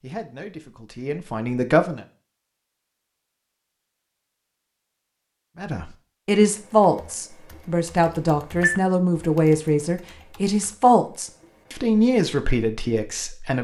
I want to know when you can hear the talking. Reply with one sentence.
The talking can be heard from 0.0 to 2.0 s and from 5.6 to 13.5 s.